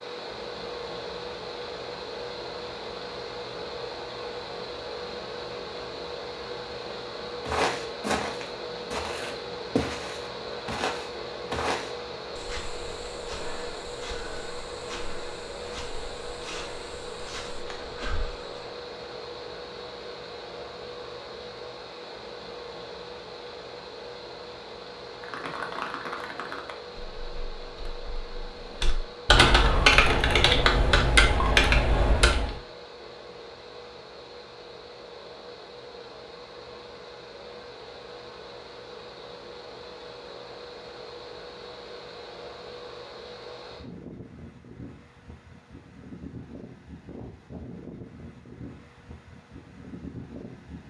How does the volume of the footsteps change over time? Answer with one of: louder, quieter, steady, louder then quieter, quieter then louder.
quieter.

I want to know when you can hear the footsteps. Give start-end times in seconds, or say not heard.
7.5-18.6.